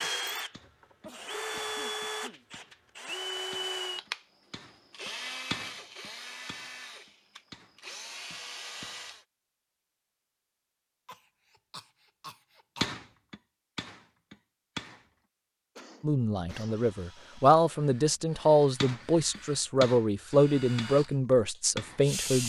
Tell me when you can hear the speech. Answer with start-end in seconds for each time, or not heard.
16.0-22.4.